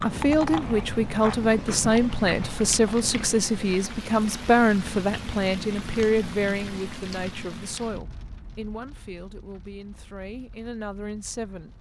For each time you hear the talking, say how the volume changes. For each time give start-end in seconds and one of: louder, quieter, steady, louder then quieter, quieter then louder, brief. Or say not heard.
0.0-11.7 quieter.